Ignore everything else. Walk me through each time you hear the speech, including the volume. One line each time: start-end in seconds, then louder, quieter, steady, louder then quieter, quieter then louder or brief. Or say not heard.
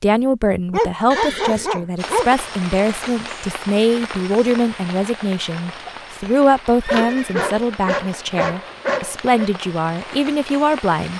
0.0-11.1 steady.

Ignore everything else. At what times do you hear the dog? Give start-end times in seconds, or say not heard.
0.7-2.3, 6.8-9.5.